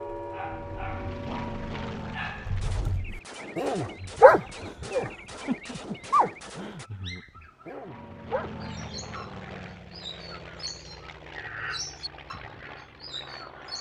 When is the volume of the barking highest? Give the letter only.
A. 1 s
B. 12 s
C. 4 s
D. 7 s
C.